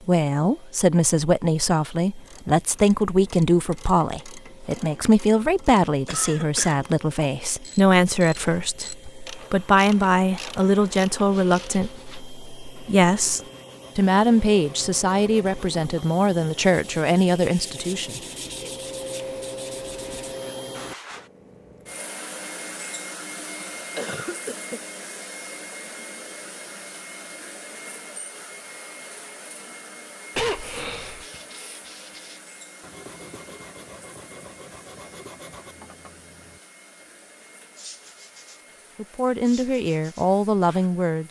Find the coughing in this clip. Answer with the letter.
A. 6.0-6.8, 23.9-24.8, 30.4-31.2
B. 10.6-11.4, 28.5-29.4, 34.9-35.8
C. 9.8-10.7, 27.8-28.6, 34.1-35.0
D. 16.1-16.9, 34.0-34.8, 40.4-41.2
A.